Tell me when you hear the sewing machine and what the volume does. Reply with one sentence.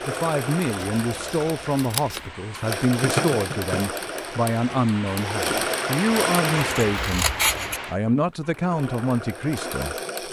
The sewing machine can be heard from 0.0 to 10.2 s, getting louder then quieter.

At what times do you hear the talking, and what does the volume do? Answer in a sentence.
You can hear the talking from 0.1 to 9.9 s, at a steady volume.